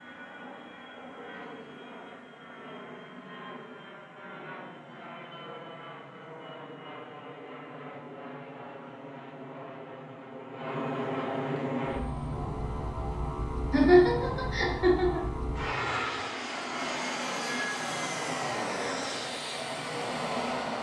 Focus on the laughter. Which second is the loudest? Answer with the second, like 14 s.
14 s.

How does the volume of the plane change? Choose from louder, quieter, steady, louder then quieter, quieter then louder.
louder.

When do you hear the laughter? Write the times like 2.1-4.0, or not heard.
13.7-15.3.